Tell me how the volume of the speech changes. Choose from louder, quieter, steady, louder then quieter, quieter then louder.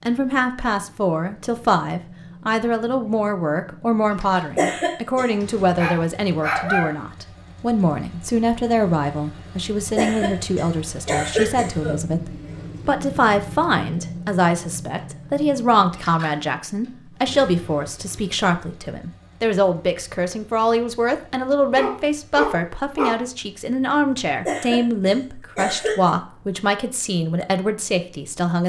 steady.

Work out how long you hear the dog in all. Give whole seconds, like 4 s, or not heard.
3 s.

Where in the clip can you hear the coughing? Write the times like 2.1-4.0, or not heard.
4.5-5.3, 9.9-11.9, 24.4-26.1.